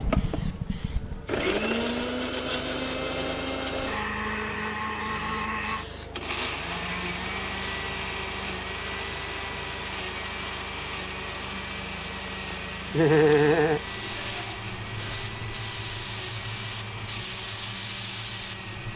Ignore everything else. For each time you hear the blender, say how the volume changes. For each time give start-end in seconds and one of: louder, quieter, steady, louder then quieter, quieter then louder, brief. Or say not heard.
0.0-18.9 quieter.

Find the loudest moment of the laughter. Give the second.
13 s.